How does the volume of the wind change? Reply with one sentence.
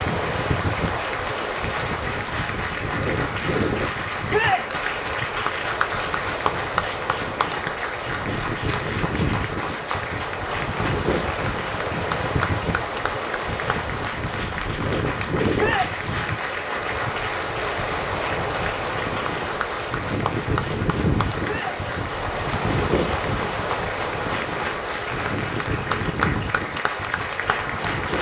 The volume of the wind stays about the same.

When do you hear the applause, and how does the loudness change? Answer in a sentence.
You can hear the applause from 0.0 to 28.1 s, at a steady volume.